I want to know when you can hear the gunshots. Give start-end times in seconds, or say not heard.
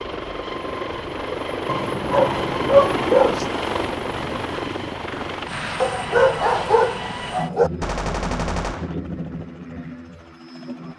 7.8-8.9.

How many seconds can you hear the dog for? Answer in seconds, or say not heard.
4 s.